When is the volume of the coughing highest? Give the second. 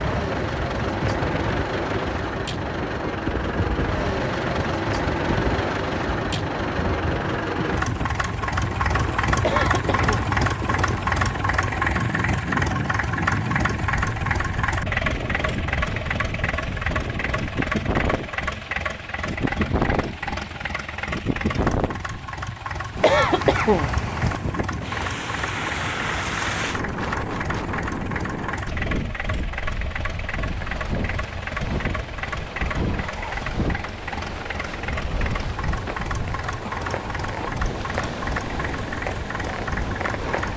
23 s.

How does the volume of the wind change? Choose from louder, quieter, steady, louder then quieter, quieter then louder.
steady.